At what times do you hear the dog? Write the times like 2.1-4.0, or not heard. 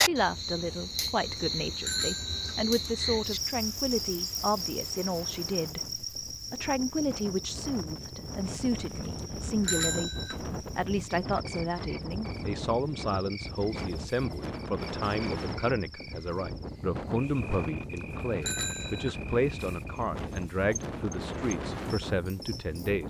not heard.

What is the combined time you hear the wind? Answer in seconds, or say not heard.
23 s.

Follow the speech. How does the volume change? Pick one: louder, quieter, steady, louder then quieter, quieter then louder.
steady.